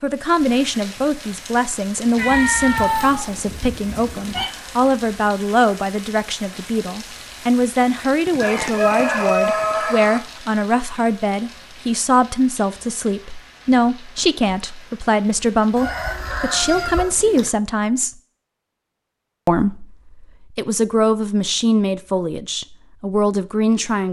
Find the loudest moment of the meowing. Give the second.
3 s.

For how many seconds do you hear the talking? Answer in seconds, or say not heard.
23 s.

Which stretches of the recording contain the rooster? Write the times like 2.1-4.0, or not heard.
8.3-10.2, 15.8-17.5.